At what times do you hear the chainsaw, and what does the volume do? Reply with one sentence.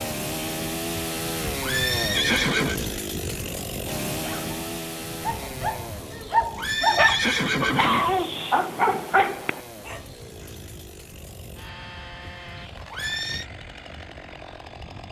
You can hear the chainsaw from 0.0 to 15.0 s, getting quieter.